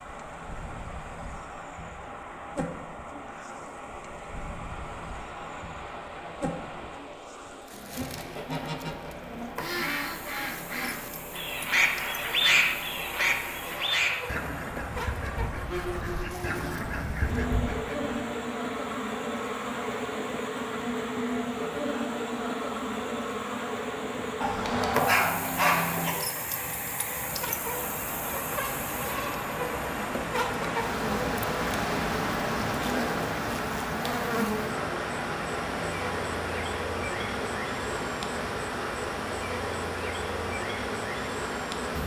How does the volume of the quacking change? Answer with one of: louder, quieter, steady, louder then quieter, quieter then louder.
louder then quieter.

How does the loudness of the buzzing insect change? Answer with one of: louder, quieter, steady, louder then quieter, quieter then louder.
louder.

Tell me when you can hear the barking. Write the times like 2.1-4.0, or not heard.
24.4-26.1.